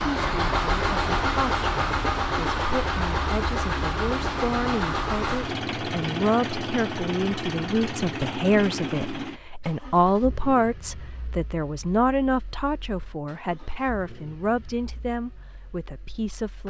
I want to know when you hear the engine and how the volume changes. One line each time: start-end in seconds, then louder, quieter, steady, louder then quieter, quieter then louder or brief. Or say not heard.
0.0-16.6 quieter.